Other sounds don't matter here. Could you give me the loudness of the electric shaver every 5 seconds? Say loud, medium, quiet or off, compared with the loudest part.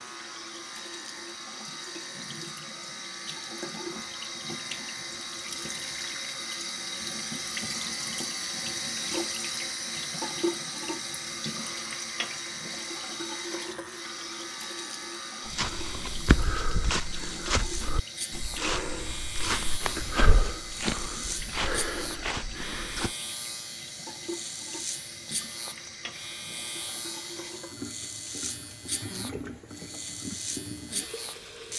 medium, medium, medium, loud, loud, loud, loud.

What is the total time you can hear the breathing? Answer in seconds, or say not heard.
not heard.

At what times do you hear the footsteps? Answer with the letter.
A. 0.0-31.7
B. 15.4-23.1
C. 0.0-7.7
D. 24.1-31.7
B.